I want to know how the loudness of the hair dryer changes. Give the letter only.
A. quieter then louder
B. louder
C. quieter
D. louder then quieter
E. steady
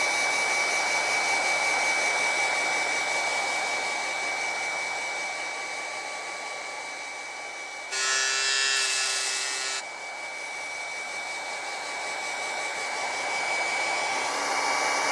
A.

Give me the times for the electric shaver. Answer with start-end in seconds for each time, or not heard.
7.9-9.8.